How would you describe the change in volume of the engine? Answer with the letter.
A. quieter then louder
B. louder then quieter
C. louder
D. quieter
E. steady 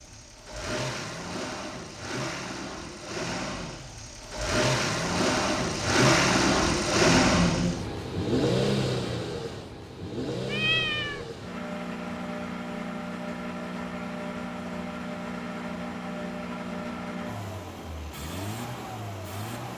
B.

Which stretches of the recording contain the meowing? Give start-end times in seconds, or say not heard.
7.2-7.8, 10.5-11.2.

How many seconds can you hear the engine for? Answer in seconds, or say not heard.
20 s.